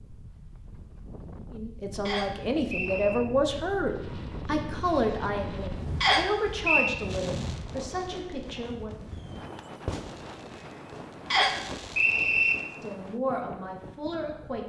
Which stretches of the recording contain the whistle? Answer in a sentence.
You can hear the whistle from 2.0 to 3.2 s, from 6.0 to 7.0 s and from 11.3 to 12.6 s.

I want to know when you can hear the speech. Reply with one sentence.
You can hear the speech from 1.5 to 8.9 s and from 12.8 to 14.6 s.